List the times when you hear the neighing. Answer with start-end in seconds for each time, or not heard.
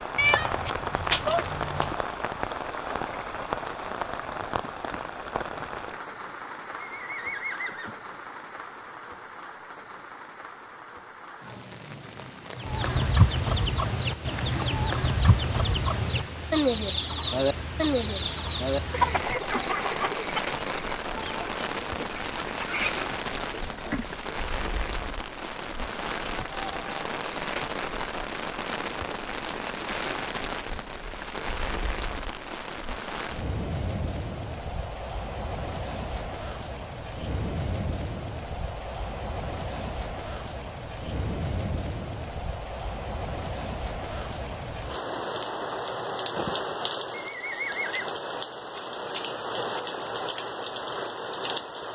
6.8-8.0, 47.1-48.1.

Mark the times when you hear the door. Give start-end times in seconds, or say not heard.
not heard.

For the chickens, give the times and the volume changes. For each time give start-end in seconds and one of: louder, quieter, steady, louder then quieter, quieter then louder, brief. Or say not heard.
12.6-24.2 quieter.